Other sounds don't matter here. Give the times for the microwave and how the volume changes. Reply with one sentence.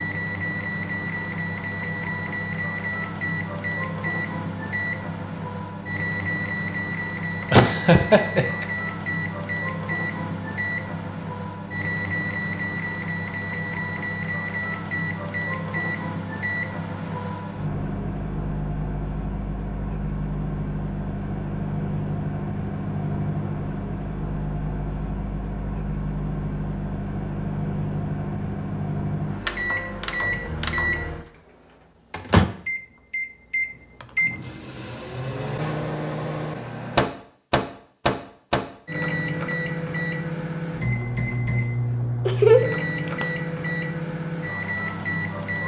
The microwave can be heard from 0.0 to 45.6 s, at a steady volume.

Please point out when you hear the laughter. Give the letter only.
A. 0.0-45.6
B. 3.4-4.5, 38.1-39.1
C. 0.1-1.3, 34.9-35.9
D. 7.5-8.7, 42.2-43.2
D.